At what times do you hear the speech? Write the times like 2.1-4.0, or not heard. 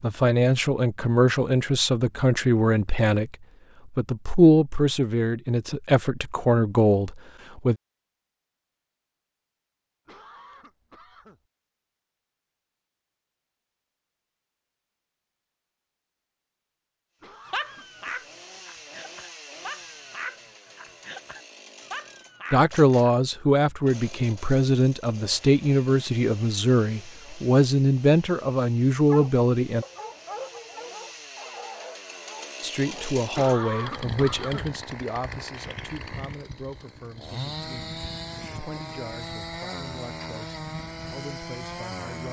0.0-7.8, 22.5-29.9, 32.6-42.2.